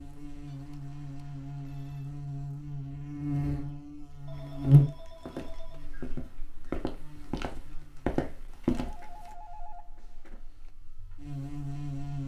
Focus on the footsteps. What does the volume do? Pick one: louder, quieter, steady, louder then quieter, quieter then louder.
louder.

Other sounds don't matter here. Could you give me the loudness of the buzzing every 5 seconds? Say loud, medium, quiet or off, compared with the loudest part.
loud, quiet, medium.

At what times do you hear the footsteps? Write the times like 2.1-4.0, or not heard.
4.3-9.3.